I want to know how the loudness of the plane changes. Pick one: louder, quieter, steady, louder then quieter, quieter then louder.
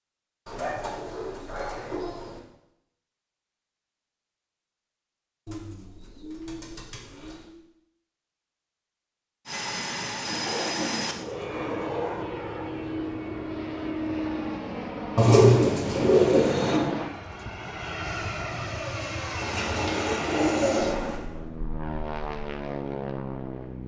steady.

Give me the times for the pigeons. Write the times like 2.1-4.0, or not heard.
0.5-2.4, 5.5-7.5, 10.2-12.2, 15.2-16.8, 19.4-21.2.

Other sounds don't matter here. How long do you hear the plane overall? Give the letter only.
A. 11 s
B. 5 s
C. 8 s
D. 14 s
D.